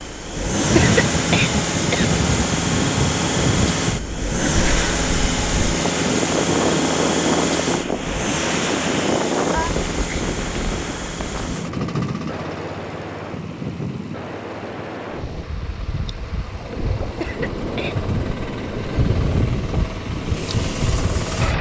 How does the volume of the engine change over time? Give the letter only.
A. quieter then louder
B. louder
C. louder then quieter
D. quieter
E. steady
A.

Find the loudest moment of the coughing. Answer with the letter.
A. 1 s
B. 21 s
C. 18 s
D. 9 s
A.